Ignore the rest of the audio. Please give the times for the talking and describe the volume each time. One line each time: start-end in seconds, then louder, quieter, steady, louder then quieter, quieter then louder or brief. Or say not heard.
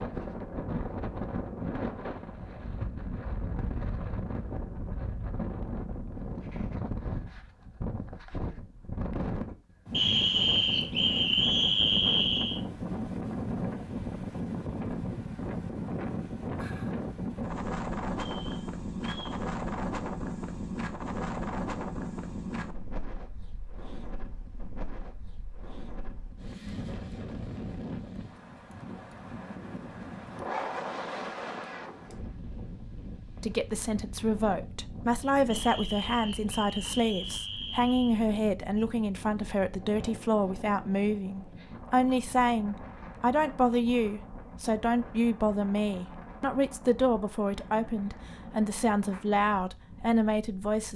33.4-50.9 steady.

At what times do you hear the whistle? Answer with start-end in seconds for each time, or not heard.
9.9-12.6, 18.1-19.4, 35.5-38.1.